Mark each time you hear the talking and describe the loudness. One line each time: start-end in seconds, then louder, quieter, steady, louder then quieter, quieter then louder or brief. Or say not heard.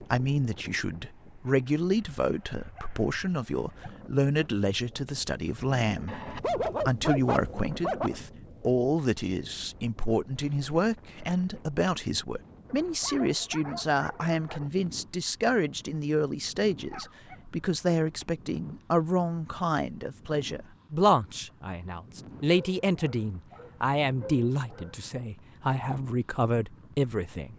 0.0-27.5 steady.